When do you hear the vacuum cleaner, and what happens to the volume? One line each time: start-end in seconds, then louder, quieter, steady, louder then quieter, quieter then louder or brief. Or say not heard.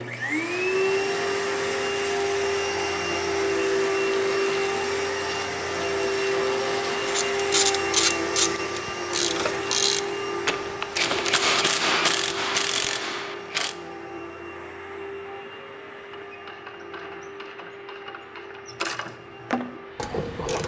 0.0-20.6 quieter.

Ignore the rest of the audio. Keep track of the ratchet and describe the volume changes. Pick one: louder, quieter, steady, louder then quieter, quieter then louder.
quieter then louder.